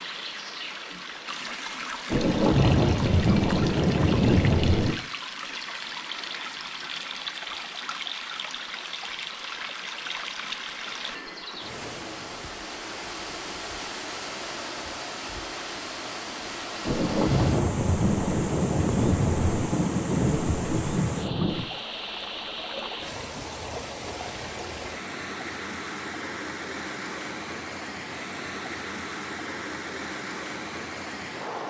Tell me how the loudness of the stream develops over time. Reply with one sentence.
The loudness of the stream stays about the same.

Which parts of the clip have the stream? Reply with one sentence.
The stream can be heard from 0.0 to 31.6 s.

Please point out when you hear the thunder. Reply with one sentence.
You can hear the thunder from 2.1 to 5.0 s and from 16.9 to 21.7 s.